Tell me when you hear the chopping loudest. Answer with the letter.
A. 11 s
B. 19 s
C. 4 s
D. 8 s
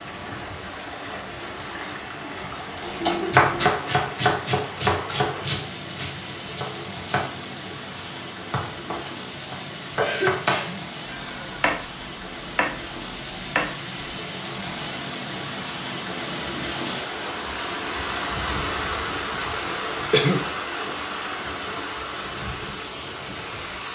C.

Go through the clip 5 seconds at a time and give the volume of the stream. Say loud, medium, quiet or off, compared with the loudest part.
medium, medium, medium, loud, loud.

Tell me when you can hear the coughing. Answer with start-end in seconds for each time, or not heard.
2.8-3.7, 9.9-10.8, 19.6-20.4.